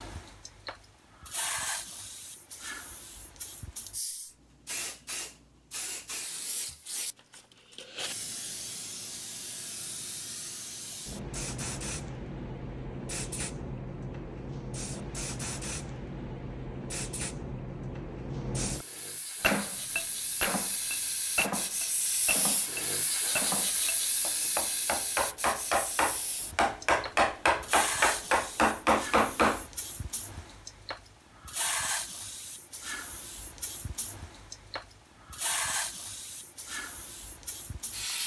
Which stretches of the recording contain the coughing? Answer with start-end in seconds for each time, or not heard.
not heard.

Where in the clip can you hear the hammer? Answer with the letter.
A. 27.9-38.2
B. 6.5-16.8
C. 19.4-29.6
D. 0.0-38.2
C.